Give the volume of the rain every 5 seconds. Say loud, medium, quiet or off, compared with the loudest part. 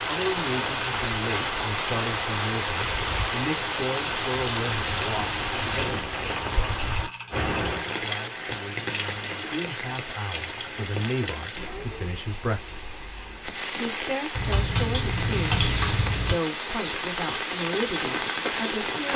loud, loud, medium, loud.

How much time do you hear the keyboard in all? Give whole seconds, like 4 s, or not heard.
4 s.